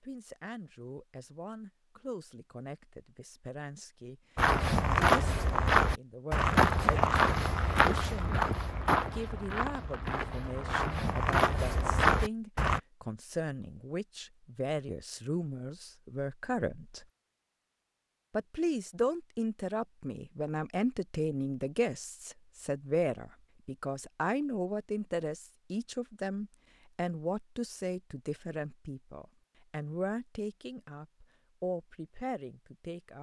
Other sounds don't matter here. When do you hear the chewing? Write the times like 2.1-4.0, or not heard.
not heard.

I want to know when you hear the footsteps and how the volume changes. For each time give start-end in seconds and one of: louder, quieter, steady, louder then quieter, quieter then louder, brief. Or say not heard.
4.3-12.8 quieter then louder.